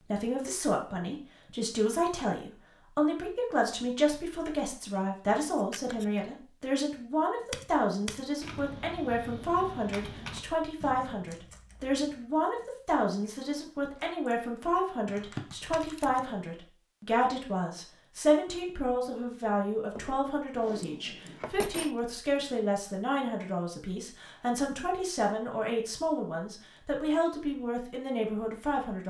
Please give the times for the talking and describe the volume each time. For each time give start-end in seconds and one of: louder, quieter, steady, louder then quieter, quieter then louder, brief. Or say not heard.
0.1-29.0 steady.